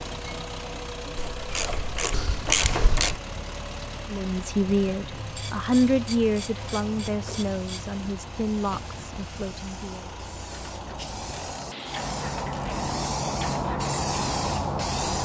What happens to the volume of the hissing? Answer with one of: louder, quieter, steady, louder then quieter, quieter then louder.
louder.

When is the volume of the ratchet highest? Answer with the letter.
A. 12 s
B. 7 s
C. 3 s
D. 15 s
C.